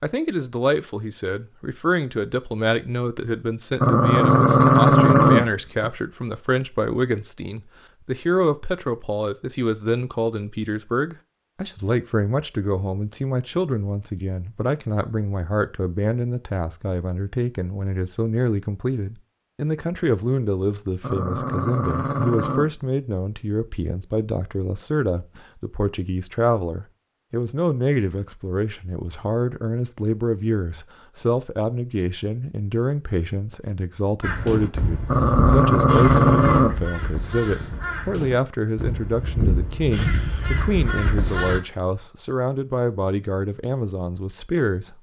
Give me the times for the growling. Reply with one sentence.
You can hear the growling from 3.8 to 5.8 s, from 21.0 to 22.7 s and from 35.0 to 36.8 s.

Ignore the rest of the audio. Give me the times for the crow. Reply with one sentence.
The crow can be heard from 34.2 to 41.6 s.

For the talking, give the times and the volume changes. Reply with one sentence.
You can hear the talking from 0.0 to 44.9 s, at a steady volume.